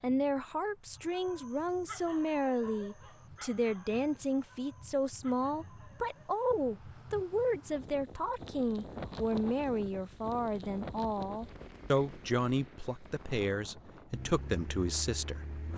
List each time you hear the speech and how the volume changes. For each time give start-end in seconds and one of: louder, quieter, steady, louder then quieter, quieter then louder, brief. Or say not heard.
0.0-15.7 steady.